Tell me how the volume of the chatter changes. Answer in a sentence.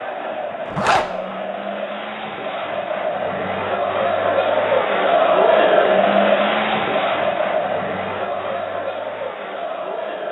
The volume of the chatter goes up, then down.